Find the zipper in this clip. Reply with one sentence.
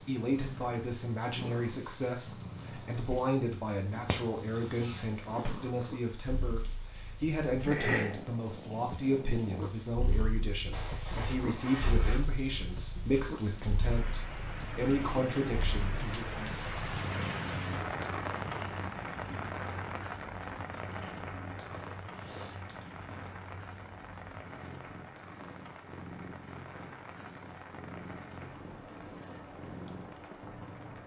You can hear the zipper from 4.5 to 5.5 s, from 10.7 to 12.2 s and from 21.6 to 22.9 s.